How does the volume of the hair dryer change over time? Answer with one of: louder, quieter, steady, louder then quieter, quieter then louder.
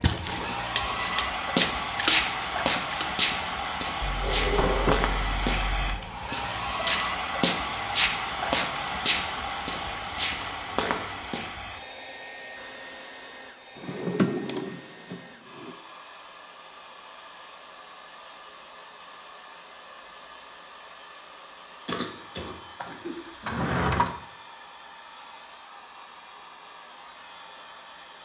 quieter.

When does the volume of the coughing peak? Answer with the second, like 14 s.
22 s.